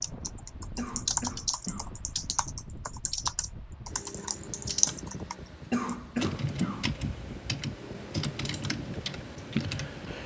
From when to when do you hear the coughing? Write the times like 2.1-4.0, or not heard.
0.8-1.9, 5.7-6.9.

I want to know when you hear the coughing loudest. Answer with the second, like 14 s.
6 s.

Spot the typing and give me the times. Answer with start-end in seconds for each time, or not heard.
0.0-10.2.